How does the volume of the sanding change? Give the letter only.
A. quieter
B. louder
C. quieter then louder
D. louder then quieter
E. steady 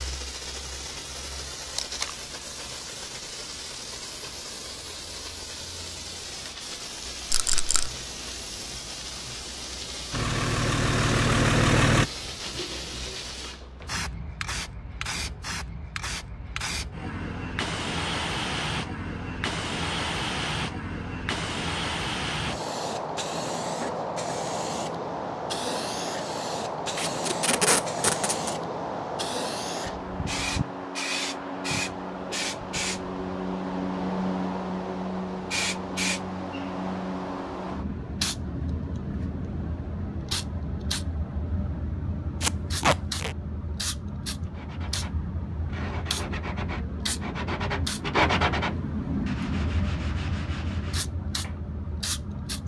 D.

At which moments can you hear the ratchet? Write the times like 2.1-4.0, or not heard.
not heard.